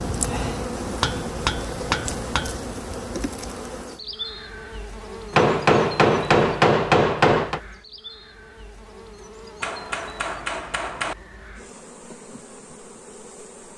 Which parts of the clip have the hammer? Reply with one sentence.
The hammer can be heard from 1.0 to 2.6 s, from 5.3 to 7.6 s and from 9.6 to 11.2 s.